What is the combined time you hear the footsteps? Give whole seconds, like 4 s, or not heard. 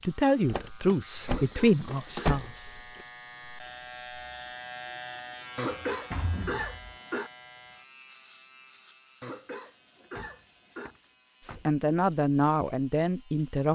not heard.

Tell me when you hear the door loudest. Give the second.
2 s.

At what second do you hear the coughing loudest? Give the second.
6 s.